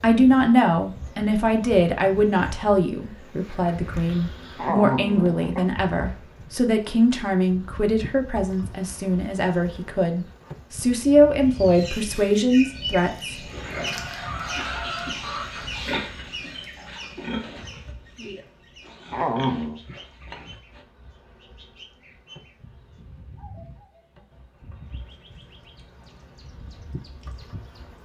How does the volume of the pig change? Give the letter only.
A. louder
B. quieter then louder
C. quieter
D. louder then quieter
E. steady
C.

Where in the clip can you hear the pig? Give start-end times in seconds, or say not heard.
13.4-20.9.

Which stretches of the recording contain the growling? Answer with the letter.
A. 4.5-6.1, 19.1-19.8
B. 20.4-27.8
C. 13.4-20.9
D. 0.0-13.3
A.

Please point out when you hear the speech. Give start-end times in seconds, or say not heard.
0.0-13.3.